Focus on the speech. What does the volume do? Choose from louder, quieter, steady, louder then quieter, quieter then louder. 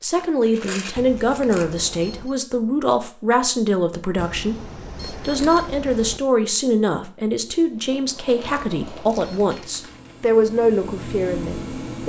steady.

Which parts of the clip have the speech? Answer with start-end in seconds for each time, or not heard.
0.0-12.0.